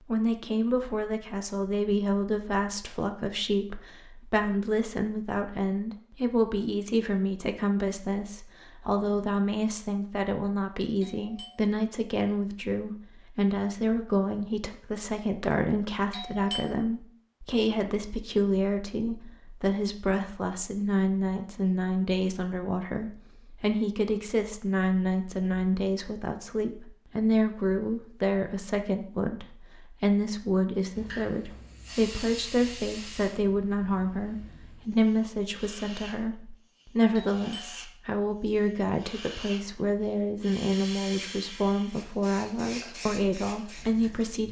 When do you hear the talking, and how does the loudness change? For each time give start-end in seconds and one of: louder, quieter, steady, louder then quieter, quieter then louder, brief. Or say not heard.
0.1-44.4 steady.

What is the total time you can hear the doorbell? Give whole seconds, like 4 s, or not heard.
2 s.